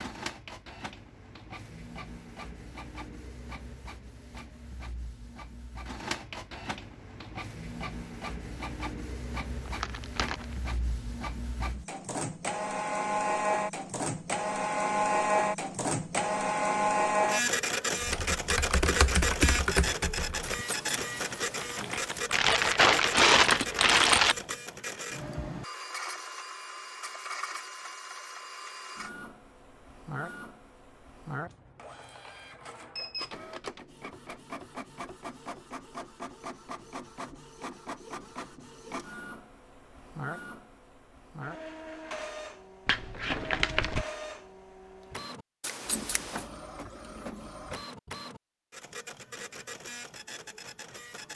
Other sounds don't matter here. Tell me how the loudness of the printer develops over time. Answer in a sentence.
The loudness of the printer goes up, then down.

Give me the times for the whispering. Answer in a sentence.
The whispering can't be heard in this clip.